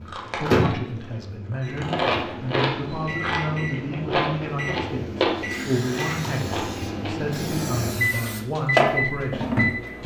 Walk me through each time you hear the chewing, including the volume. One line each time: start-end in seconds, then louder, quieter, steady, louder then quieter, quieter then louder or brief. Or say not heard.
0.1-7.3 louder then quieter.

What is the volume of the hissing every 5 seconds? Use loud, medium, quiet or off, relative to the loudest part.
off, loud.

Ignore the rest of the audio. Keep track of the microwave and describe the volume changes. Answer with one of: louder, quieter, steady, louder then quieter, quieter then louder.
quieter then louder.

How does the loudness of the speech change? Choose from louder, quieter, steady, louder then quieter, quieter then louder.
steady.